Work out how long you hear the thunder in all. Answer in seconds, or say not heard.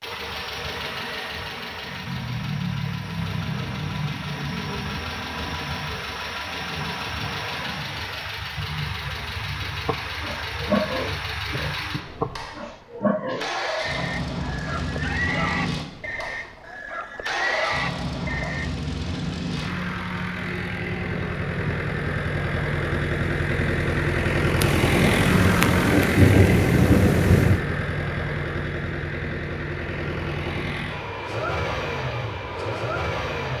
3 s.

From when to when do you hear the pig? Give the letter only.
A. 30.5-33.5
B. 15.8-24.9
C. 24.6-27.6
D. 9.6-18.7
D.